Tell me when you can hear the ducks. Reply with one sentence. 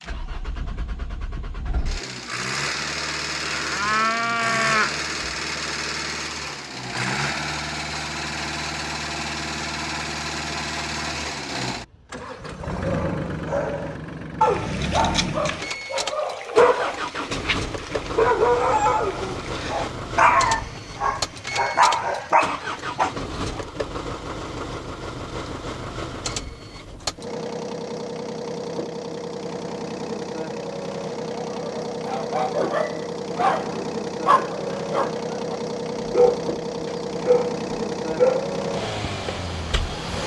The ducks can't be heard in this clip.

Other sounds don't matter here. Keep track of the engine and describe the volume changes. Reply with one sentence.
The volume of the engine stays about the same.